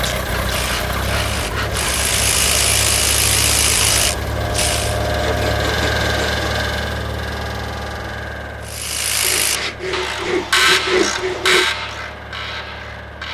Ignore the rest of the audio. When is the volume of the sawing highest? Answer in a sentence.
The loudest moment of the sawing is at 11 seconds.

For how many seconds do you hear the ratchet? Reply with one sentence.
You can hear the ratchet for 10 seconds altogether.